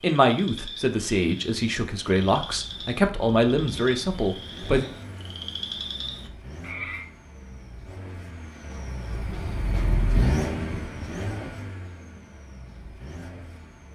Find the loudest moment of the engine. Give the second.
10 s.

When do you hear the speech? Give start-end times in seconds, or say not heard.
0.0-4.8.